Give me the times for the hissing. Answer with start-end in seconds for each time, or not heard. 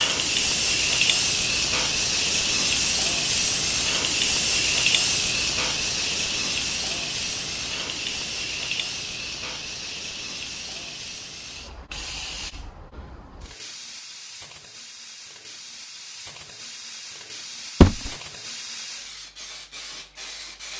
0.0-20.7.